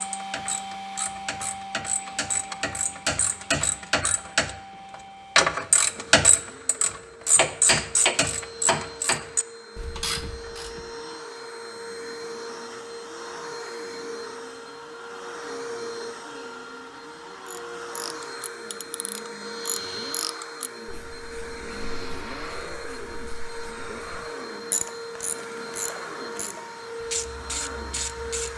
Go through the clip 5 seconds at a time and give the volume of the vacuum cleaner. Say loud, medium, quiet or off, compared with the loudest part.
loud, medium, loud, loud, loud, loud.